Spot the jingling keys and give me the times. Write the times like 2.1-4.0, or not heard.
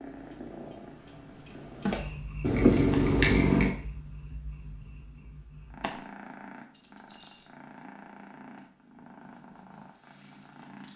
2.4-3.8, 6.7-7.8.